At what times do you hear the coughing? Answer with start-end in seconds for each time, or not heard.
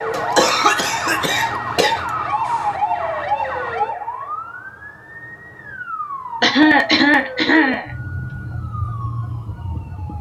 0.1-2.0, 6.4-8.3.